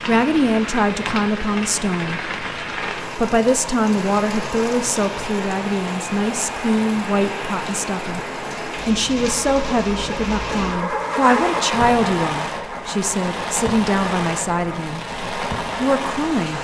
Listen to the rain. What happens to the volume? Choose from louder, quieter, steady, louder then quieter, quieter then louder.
steady.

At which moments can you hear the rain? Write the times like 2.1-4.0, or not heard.
0.0-16.5.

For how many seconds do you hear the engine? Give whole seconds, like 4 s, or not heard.
7 s.